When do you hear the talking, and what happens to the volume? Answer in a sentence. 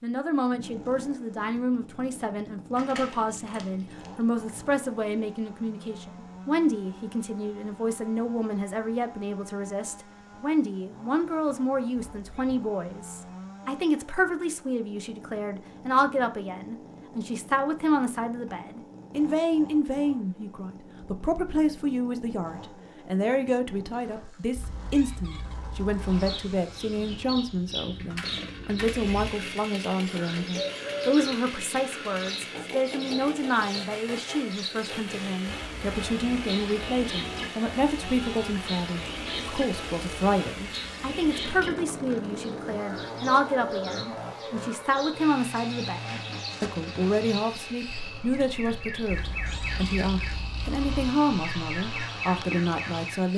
The talking can be heard from 0.0 to 53.3 s, at a steady volume.